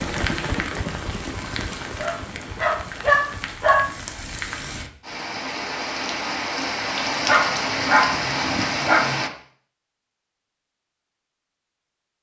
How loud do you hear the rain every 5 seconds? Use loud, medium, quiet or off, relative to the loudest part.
medium, loud, off.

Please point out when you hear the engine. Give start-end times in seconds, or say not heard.
0.0-3.6.